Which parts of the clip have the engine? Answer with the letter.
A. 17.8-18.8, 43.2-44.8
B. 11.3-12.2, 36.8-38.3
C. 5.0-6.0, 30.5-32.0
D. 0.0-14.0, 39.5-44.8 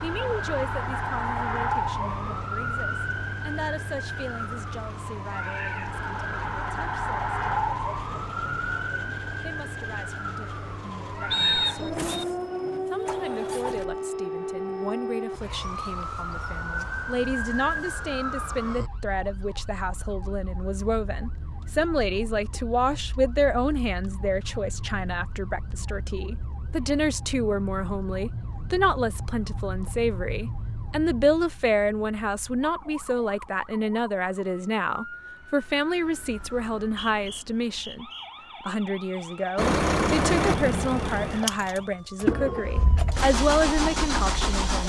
D.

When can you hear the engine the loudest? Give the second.
40 s.